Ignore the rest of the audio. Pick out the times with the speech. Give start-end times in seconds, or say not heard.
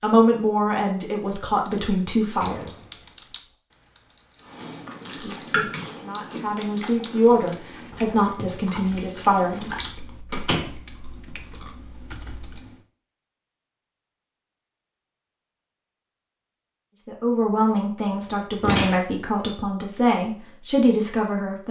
0.0-2.7, 5.0-9.7, 17.1-21.6.